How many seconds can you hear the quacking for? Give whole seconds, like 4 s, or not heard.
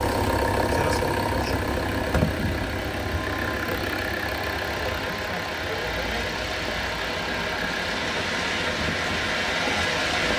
not heard.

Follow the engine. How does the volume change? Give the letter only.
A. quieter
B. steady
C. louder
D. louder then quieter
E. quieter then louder
A.